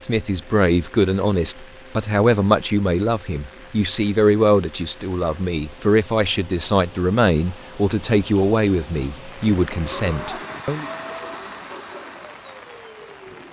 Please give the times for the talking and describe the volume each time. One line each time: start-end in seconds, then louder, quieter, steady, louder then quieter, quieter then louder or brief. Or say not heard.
0.0-10.9 steady.